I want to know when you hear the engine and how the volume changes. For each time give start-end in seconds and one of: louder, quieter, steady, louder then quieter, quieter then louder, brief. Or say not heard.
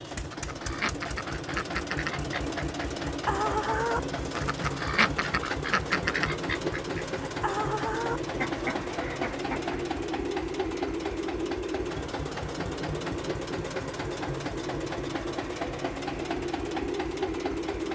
0.0-17.9 steady.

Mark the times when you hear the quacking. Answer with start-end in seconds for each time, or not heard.
0.1-9.9.